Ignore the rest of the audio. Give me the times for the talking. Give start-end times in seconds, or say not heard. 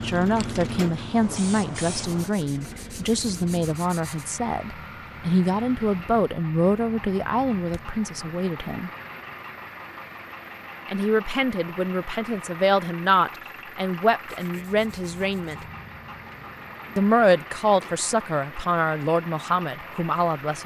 0.0-8.9, 10.8-15.7, 16.9-20.6.